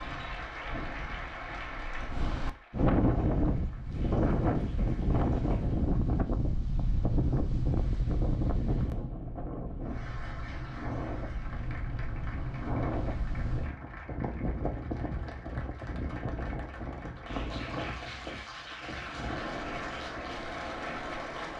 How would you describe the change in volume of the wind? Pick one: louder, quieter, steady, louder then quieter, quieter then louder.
quieter.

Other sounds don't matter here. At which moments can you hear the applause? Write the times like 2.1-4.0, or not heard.
0.0-5.8, 9.8-21.5.